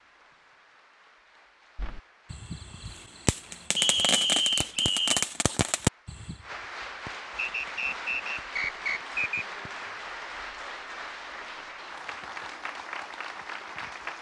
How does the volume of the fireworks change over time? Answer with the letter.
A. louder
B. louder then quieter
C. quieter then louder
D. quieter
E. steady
B.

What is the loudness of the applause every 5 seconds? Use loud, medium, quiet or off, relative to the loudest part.
quiet, loud, loud.